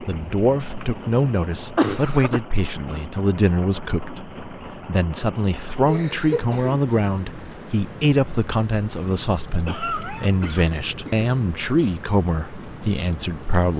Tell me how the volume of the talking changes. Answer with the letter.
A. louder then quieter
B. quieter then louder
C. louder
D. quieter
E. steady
E.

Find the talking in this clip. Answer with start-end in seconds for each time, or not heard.
0.0-13.7.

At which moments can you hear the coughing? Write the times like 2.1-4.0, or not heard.
0.0-2.4, 5.8-6.8, 9.7-11.2.